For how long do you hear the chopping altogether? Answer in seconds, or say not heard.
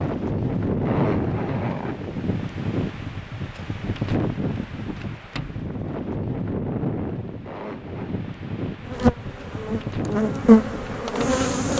not heard.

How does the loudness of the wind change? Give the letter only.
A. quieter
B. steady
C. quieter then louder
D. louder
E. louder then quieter
A.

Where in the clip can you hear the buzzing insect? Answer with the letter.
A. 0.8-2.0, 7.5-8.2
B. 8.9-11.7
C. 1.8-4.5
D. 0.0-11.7
B.